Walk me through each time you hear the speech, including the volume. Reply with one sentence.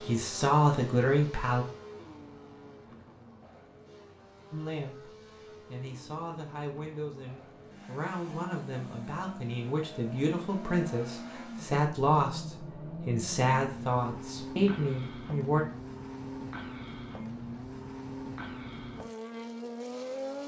You can hear the speech briefly from 0.0 to 1.6 s; and from 4.5 to 15.7 s, getting louder.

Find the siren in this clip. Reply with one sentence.
You can't hear the siren here.